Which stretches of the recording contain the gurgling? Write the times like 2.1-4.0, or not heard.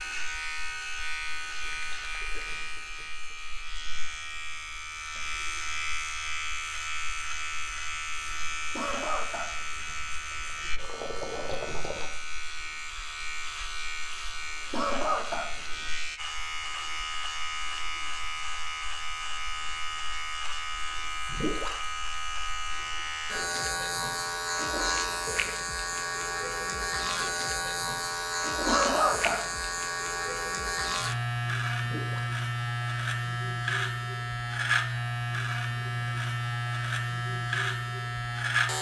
1.6-3.4, 9.8-12.1, 21.2-21.9, 31.8-32.4.